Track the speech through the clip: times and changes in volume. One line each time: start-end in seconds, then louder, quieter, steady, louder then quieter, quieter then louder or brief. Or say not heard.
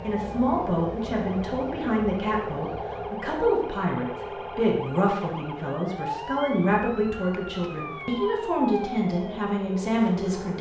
0.0-10.5 steady.